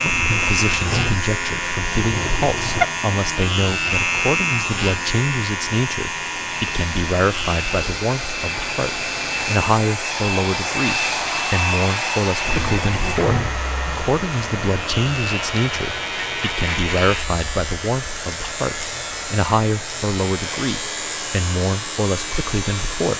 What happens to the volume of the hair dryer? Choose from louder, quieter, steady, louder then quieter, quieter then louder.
louder then quieter.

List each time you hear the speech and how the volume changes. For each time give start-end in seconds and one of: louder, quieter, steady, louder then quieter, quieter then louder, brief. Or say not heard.
0.0-23.1 steady.